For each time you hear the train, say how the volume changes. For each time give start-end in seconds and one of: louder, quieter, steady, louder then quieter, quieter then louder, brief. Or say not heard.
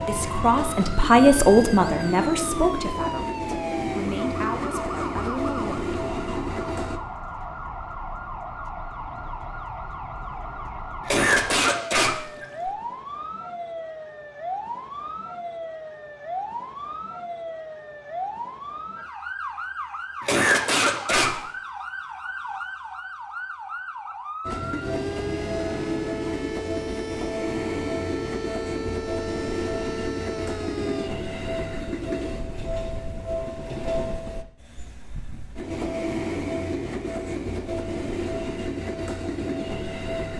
0.0-7.0 steady
24.4-40.3 steady.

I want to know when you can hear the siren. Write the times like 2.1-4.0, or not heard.
0.0-31.1.